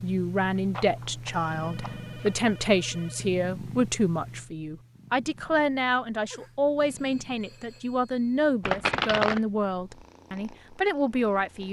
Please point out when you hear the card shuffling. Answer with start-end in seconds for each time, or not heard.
0.6-2.5, 8.7-9.4.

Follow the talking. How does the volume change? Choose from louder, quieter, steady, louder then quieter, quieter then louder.
steady.